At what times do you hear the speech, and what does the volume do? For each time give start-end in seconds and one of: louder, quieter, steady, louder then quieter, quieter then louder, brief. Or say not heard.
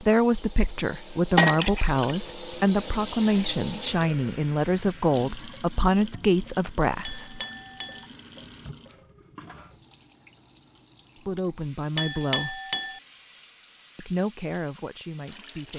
0.0-7.4 steady
11.2-12.6 brief
13.9-15.7 brief.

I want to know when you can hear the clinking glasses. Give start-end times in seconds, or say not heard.
1.4-2.2, 7.0-8.1, 11.9-13.0.